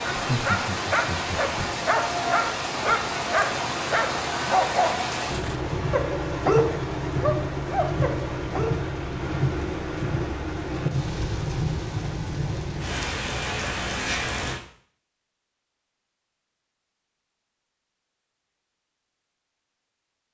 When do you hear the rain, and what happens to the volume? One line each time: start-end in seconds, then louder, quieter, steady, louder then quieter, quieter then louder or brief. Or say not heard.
0.0-14.6 steady.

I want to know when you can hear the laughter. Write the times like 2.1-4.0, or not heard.
0.1-1.7.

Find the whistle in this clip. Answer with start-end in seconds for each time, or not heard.
not heard.